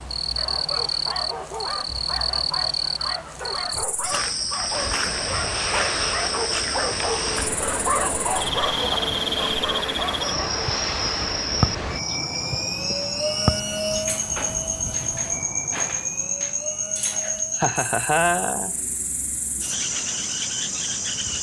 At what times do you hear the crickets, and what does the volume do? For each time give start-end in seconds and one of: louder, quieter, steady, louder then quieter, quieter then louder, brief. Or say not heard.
0.0-21.3 steady.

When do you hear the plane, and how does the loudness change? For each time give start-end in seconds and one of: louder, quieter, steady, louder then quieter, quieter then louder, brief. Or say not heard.
4.7-21.3 quieter.